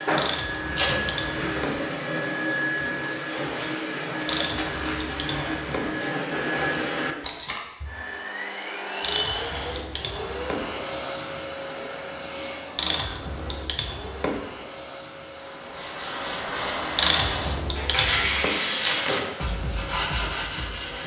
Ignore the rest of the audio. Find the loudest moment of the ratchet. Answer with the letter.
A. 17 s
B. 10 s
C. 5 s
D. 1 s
A.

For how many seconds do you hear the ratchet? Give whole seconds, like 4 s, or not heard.
8 s.